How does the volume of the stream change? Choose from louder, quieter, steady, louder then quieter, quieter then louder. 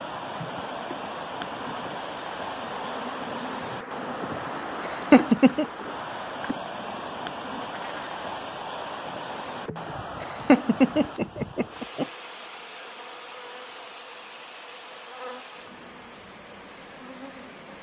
quieter.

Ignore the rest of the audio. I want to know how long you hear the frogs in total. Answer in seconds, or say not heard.
not heard.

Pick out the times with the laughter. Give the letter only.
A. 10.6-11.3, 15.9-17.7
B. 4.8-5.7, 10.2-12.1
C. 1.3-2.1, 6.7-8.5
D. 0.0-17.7
B.